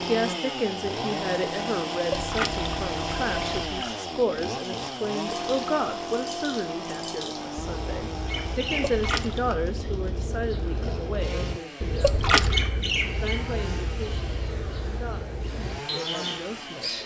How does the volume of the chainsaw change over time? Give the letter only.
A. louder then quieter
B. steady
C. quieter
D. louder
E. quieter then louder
C.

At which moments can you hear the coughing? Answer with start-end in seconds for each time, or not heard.
not heard.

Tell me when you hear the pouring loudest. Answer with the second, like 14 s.
12 s.